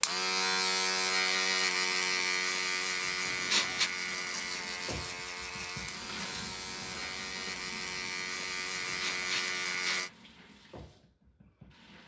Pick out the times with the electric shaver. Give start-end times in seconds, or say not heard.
0.0-10.1.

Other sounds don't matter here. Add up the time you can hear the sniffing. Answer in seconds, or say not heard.
2 s.